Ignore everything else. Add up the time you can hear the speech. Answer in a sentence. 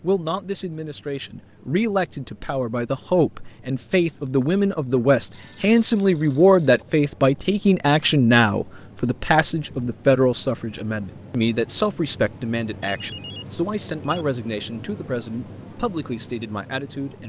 You can hear the speech for 17 seconds altogether.